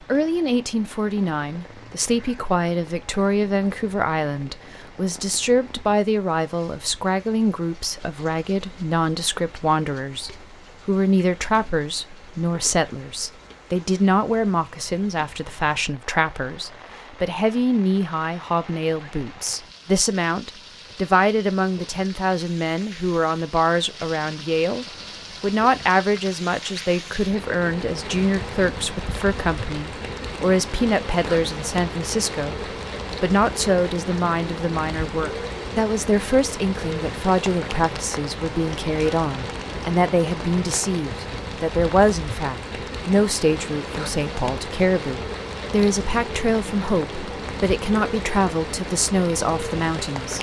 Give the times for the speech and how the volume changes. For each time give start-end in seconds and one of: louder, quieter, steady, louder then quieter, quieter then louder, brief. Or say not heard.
0.0-50.3 steady.